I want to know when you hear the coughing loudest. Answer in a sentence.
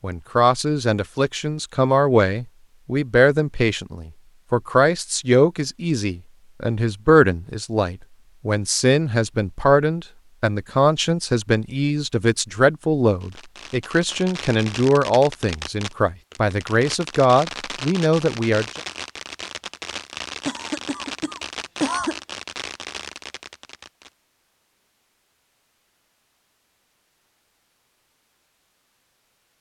The volume of the coughing peaks at 22 seconds.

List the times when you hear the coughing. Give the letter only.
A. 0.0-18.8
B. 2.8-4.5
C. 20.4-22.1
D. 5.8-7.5
C.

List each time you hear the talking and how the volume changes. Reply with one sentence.
You can hear the talking from 0.0 to 18.8 s, at a steady volume.